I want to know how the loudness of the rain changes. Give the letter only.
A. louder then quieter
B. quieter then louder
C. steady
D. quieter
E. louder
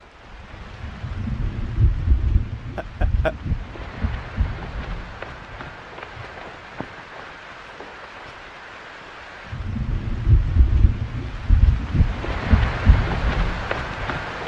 B.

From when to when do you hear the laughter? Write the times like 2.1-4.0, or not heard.
2.8-3.4.